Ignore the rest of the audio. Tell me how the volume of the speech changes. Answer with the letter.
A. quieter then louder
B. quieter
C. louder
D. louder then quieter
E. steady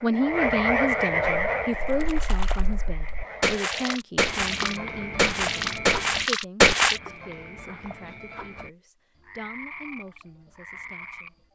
B.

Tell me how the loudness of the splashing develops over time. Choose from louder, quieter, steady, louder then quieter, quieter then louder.
louder.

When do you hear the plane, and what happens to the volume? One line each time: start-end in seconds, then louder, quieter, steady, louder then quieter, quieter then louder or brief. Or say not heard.
not heard.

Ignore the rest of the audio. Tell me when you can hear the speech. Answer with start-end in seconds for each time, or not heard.
0.0-11.4.